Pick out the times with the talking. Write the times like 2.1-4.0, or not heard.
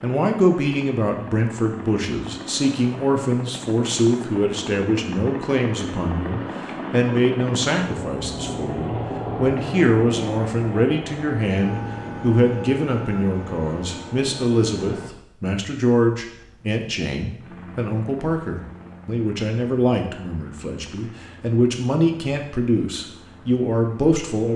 0.0-24.5.